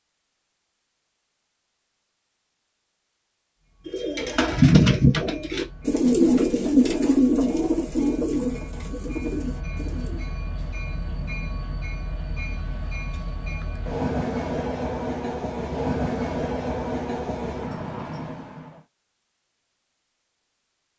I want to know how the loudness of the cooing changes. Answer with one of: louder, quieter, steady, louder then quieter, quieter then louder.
quieter.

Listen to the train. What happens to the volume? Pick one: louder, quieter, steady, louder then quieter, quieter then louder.
louder.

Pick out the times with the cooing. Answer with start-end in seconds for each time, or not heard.
3.9-10.3.